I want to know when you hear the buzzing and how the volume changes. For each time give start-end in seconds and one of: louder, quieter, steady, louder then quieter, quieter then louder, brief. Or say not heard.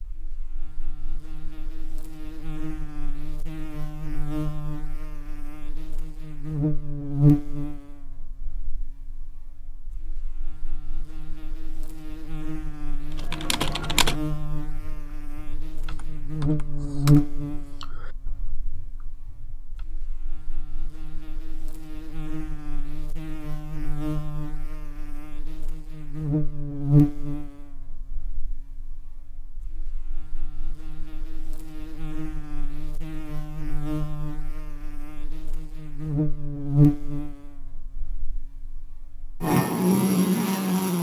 0.0-40.9 quieter then louder.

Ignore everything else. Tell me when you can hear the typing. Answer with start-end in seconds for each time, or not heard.
13.1-19.9.